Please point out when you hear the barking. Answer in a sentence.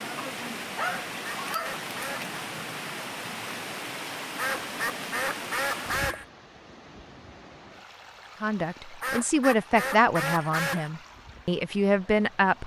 The barking can be heard from 0.1 to 1.8 s.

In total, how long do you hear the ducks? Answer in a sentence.
You can hear the ducks for 5 seconds altogether.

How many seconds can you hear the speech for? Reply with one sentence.
You can hear the speech for 4 seconds altogether.